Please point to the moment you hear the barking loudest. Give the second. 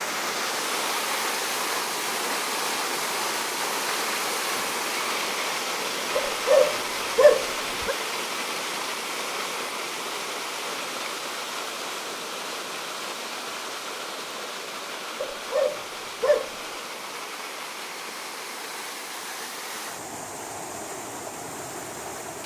7 s.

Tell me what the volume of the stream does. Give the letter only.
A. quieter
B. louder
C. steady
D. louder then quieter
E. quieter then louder
A.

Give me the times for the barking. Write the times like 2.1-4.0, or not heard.
6.2-8.0, 15.2-16.6.